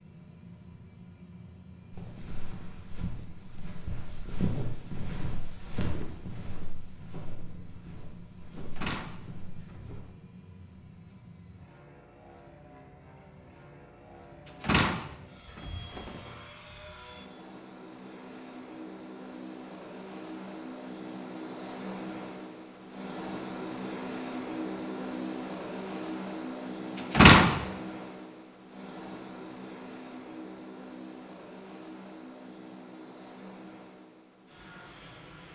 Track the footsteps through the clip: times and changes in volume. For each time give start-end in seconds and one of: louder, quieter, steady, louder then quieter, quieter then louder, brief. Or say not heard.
1.9-10.0 louder then quieter.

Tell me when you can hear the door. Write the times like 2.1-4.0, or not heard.
8.8-9.9, 14.6-16.2, 27.1-27.6.